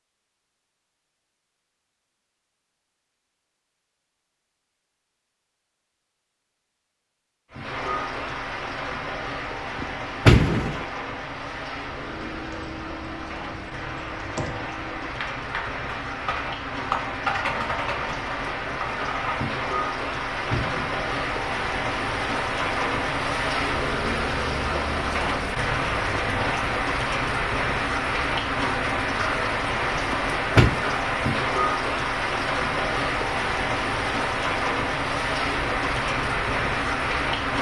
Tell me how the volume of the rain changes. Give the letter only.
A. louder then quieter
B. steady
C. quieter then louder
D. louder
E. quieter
D.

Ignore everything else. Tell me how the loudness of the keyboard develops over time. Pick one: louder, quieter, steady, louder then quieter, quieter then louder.
louder then quieter.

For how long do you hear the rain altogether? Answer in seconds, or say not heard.
30 s.